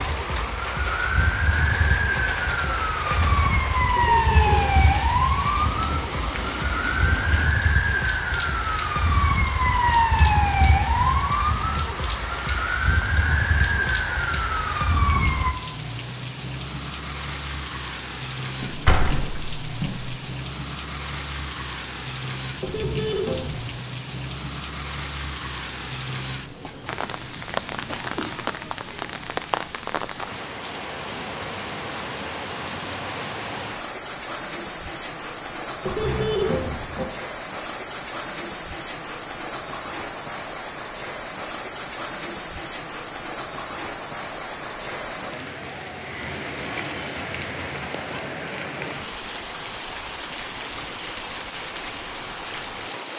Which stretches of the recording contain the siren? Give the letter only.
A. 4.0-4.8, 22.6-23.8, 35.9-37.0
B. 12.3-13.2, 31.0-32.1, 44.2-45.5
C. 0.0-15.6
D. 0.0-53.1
C.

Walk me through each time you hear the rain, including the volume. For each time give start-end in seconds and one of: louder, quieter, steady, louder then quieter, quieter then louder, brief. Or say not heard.
0.0-53.1 steady.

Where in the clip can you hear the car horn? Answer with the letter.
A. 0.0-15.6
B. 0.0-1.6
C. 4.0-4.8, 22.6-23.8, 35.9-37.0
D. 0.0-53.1
C.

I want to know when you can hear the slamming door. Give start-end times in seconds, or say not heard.
18.6-20.1.